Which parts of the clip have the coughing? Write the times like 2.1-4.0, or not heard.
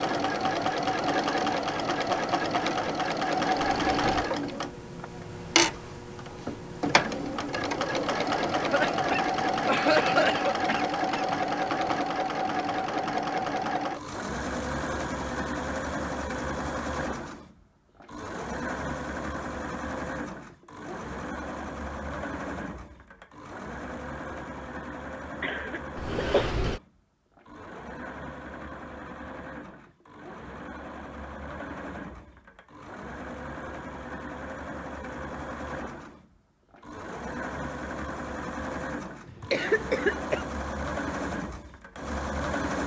8.5-11.2, 25.4-26.4, 39.2-40.5.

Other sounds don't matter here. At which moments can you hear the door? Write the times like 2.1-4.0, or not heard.
3.6-4.2, 25.9-26.8.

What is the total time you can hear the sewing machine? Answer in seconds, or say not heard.
43 s.